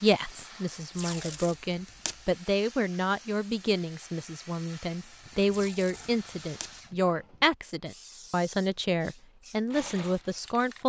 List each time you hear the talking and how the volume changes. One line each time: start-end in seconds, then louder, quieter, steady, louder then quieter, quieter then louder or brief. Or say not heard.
0.0-10.8 steady.